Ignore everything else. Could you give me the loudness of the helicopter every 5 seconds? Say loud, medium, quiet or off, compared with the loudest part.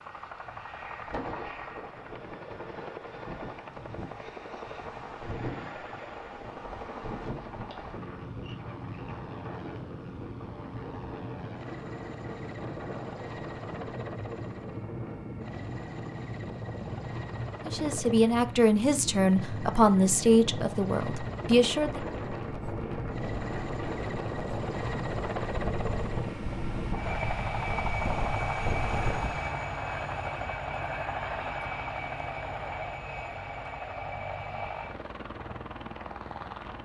medium, medium, medium, medium, medium, loud, loud, medium.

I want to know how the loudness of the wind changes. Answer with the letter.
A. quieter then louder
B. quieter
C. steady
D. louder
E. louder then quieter
D.